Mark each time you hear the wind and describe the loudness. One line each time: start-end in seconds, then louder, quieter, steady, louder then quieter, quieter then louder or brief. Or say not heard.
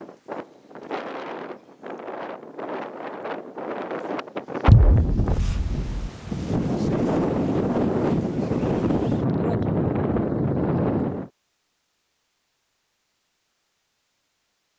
0.0-11.3 louder.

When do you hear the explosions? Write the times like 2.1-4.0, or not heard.
4.7-5.9.